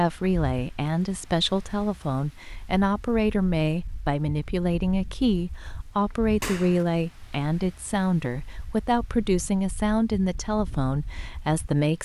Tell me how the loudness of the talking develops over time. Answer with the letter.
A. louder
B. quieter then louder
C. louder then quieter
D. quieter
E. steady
E.